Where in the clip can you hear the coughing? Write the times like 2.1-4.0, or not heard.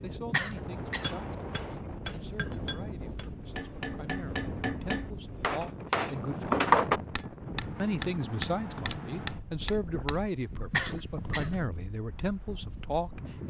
0.3-1.1, 10.7-11.7.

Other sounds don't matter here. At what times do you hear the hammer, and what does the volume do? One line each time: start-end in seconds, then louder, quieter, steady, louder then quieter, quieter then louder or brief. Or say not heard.
1.0-10.2 louder.